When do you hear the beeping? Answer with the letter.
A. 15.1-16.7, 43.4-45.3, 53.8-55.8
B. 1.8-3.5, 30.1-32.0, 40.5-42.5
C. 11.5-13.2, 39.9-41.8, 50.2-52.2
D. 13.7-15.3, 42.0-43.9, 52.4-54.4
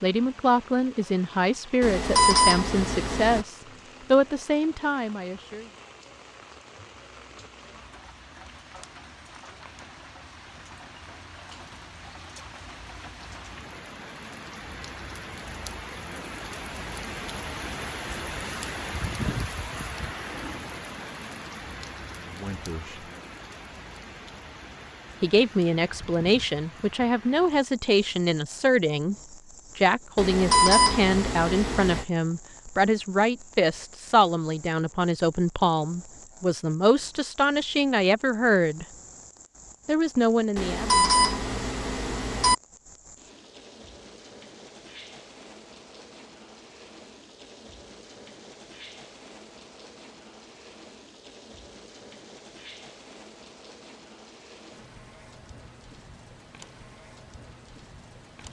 B.